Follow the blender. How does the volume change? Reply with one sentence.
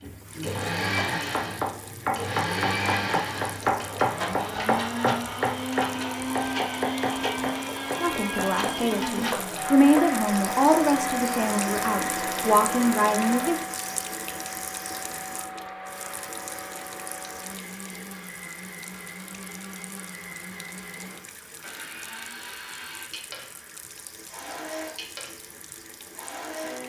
The volume of the blender goes down.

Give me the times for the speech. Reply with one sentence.
You can hear the speech from 8.0 to 13.6 s.